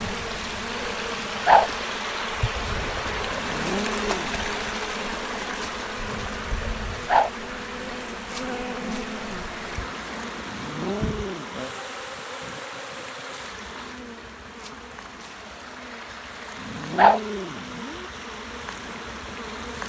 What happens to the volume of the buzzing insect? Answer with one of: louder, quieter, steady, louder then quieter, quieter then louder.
quieter.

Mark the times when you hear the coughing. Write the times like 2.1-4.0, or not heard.
not heard.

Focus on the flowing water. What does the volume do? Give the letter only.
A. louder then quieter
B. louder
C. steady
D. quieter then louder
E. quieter
E.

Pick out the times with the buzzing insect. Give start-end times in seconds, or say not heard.
0.0-19.8.